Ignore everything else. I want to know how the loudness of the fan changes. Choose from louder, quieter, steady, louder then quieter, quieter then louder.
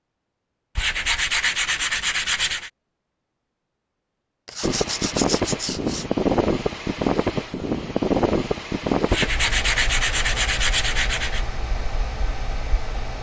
quieter.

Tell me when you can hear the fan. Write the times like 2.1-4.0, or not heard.
4.6-13.1.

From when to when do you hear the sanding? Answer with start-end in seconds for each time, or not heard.
0.8-2.7, 4.5-6.0, 9.1-11.4.